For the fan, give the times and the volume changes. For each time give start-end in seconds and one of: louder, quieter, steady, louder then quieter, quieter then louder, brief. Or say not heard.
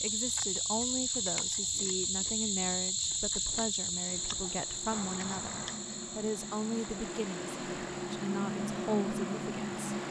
4.0-10.0 louder.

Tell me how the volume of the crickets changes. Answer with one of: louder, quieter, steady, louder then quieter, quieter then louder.
quieter.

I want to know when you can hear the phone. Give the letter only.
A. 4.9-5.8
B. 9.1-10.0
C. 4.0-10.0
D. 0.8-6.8
A.